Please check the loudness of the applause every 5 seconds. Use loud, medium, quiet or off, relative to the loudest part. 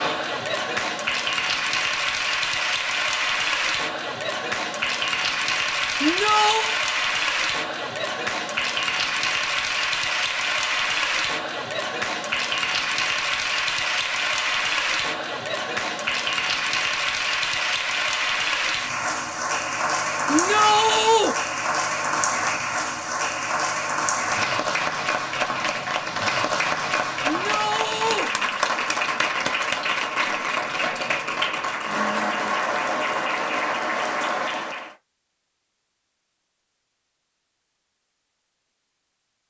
loud, loud, loud, loud, loud, loud, loud, off.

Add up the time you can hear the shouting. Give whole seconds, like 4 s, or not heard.
3 s.